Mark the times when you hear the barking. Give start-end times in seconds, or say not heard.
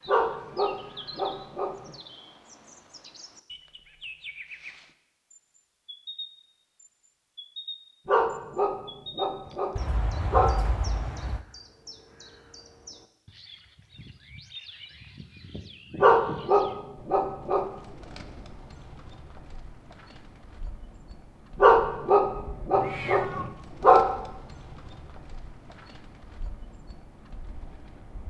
0.1-1.9, 8.1-10.6, 16.0-17.6, 21.6-24.1.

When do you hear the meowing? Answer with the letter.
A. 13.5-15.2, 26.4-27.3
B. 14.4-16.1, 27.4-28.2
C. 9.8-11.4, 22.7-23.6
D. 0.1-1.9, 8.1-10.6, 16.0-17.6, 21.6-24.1
C.